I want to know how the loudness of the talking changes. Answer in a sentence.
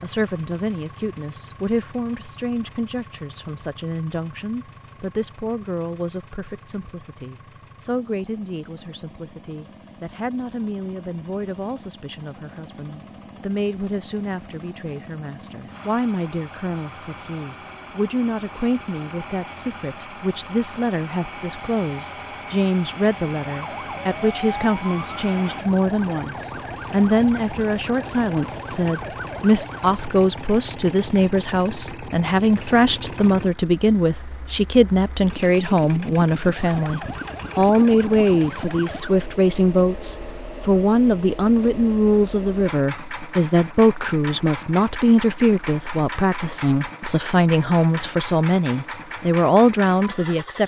The loudness of the talking goes up.